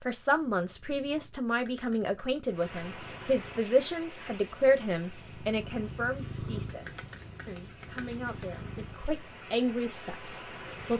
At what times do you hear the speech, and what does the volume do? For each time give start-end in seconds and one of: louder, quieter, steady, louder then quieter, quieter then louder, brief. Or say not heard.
0.0-10.9 quieter then louder.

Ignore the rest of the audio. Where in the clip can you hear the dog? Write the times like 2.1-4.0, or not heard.
not heard.